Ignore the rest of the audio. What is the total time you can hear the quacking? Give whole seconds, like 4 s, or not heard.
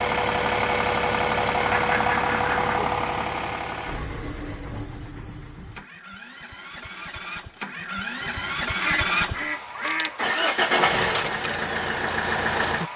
3 s.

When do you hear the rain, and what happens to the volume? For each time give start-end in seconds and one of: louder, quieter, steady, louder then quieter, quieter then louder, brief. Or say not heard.
not heard.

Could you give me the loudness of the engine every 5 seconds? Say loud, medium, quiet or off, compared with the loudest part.
loud, medium, loud.